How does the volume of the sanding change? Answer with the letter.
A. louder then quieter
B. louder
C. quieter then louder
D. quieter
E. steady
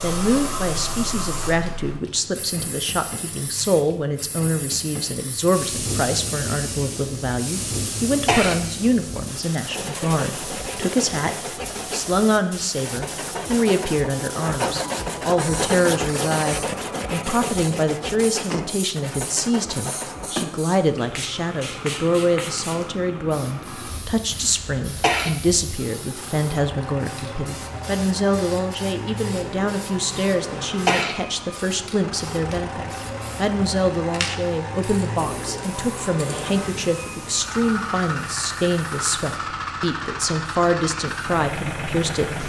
A.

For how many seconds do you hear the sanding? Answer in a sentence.
You can hear the sanding for 11 seconds altogether.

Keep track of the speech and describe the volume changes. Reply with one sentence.
The volume of the speech stays about the same.